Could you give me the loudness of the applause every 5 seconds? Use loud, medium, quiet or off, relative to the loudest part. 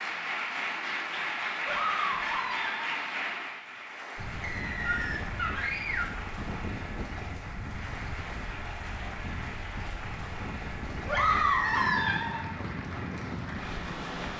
loud, medium, medium.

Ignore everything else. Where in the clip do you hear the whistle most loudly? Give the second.
12 s.